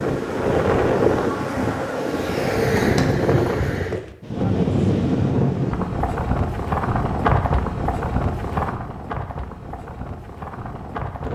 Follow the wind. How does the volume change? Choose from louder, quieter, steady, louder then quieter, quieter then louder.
quieter.